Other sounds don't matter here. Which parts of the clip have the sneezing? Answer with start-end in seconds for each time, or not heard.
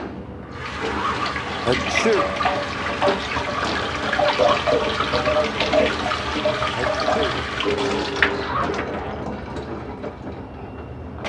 1.6-2.3, 6.8-7.4.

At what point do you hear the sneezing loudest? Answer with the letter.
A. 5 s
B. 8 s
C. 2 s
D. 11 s
C.